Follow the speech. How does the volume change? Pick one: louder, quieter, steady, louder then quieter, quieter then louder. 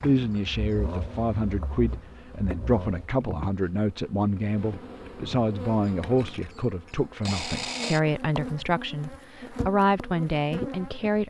steady.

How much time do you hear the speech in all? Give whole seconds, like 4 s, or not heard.
11 s.